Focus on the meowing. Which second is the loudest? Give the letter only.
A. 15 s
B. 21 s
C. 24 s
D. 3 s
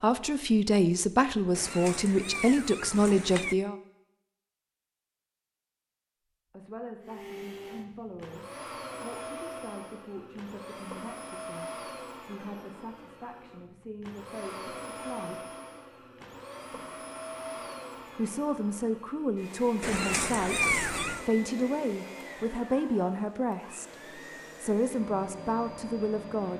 B.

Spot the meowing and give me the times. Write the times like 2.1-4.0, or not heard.
1.6-3.5, 19.8-21.2.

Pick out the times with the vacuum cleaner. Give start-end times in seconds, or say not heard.
7.0-26.5.